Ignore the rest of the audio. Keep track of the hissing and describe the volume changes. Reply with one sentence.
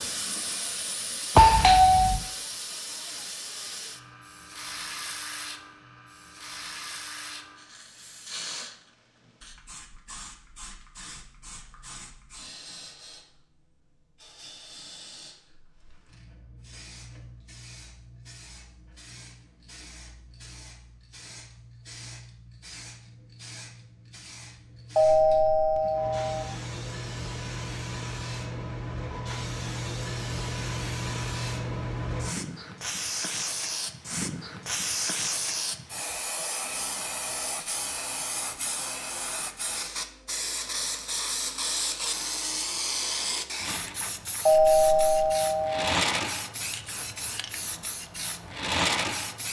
The volume of the hissing goes down, then up.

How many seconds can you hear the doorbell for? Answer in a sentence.
You can hear the doorbell for 4 seconds altogether.